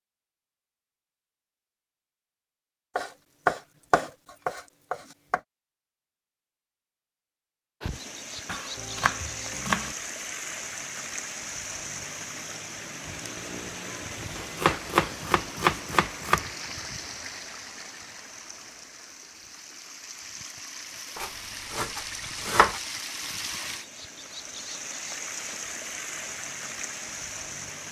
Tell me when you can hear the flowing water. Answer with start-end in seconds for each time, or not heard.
7.8-27.8.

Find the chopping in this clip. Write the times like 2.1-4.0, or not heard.
3.0-5.4, 8.4-9.9, 14.3-16.4, 21.1-22.8.